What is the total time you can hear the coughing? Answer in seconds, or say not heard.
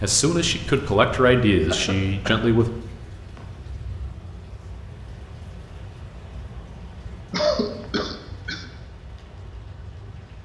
2 s.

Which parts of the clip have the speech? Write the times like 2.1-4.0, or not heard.
0.0-2.7.